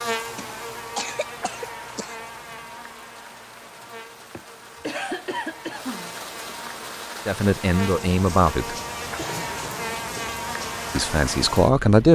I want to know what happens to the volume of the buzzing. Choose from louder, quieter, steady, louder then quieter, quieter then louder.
quieter then louder.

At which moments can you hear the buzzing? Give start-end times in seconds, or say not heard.
0.0-11.8.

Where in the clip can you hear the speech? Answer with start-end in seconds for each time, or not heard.
7.2-8.8, 10.9-12.0.